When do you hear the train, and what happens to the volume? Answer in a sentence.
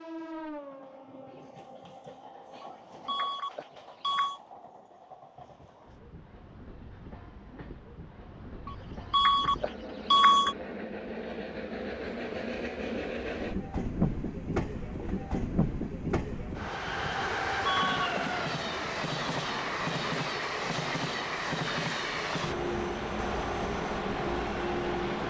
You can hear the train from 0.0 to 25.2 s, getting louder.